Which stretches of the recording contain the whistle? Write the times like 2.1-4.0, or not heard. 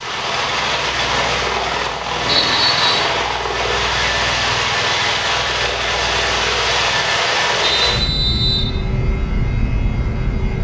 2.2-3.1, 7.6-8.7.